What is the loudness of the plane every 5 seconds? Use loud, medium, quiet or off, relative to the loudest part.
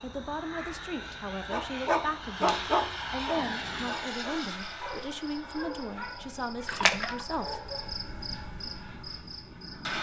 loud, medium.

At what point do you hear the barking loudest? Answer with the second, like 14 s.
3 s.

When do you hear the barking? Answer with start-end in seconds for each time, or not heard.
1.5-7.9.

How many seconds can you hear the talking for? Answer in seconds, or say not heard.
8 s.